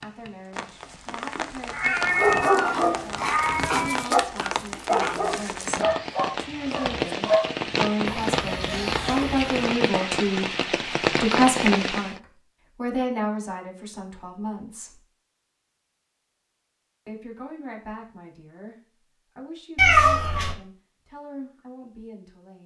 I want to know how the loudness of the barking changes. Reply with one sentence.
The loudness of the barking goes down.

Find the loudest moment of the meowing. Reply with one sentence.
The loudest moment of the meowing is at 20 seconds.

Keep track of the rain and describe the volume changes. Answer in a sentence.
The volume of the rain goes up.